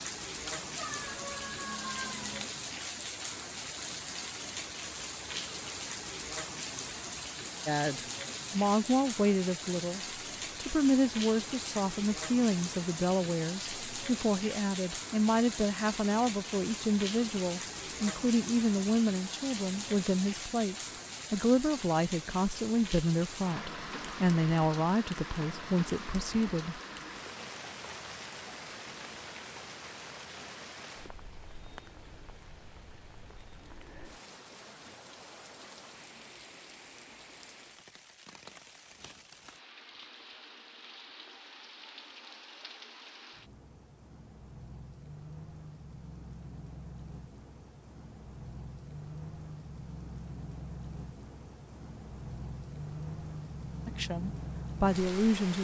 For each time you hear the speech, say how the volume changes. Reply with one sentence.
The speech can be heard from 7.7 to 26.8 s, at a steady volume; and briefly from 53.9 to 55.5 s.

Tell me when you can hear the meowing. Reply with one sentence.
The meowing can be heard from 0.5 to 2.5 s.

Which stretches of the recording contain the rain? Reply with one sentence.
The rain can be heard from 0.0 to 55.5 s.